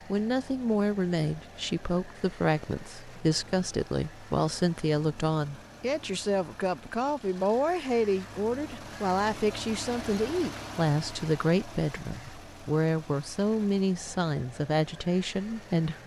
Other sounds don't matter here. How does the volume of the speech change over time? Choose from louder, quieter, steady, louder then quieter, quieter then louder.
steady.